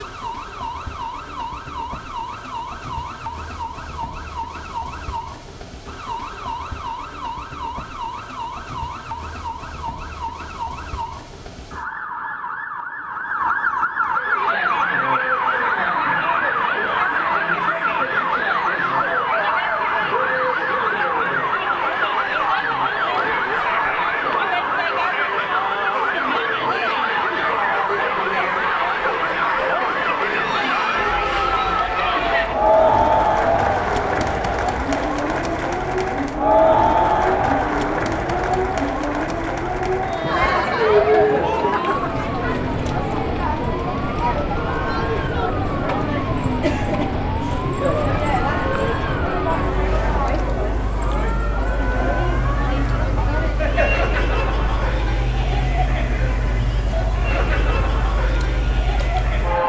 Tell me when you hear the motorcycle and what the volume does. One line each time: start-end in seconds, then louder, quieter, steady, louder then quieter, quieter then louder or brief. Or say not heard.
not heard.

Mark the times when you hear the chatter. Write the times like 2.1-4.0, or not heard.
14.1-59.6.